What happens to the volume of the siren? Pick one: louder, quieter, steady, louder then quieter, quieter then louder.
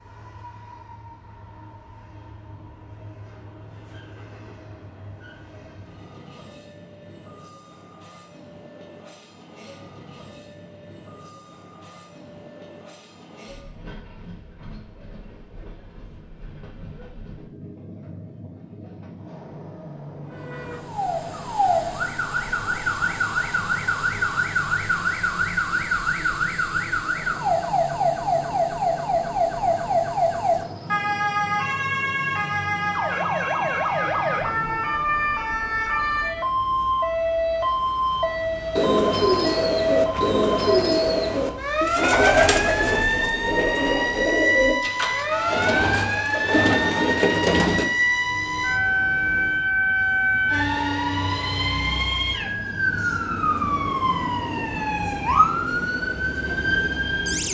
steady.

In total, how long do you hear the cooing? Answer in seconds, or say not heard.
9 s.